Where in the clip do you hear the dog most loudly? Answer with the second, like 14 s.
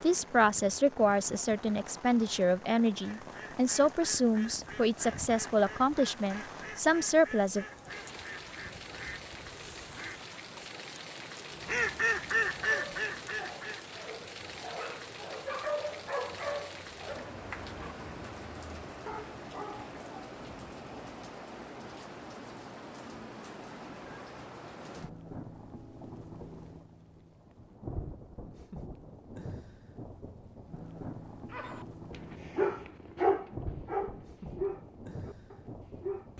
33 s.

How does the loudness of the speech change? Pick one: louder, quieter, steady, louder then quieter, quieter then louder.
steady.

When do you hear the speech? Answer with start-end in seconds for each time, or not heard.
0.0-7.7.